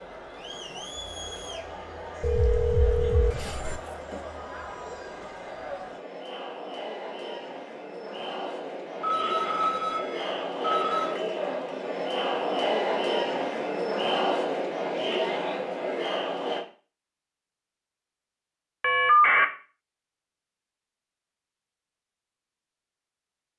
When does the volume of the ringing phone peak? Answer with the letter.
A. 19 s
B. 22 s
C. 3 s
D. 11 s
A.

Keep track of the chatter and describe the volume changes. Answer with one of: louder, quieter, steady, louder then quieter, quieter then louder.
louder.